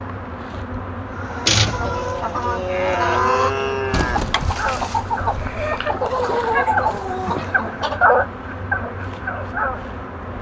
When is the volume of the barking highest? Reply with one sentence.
The loudest moment of the barking is at 8 seconds.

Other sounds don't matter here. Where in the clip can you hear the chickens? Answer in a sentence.
The chickens can be heard from 1.1 to 8.2 s.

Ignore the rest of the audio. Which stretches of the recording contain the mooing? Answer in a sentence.
The mooing can be heard from 2.6 to 4.2 s.